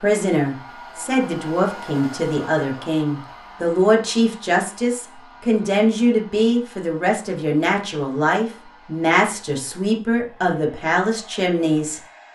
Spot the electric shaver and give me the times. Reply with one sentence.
You can't hear the electric shaver here.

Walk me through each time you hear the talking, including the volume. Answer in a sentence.
You can hear the talking from 0.0 to 12.0 s, at a steady volume.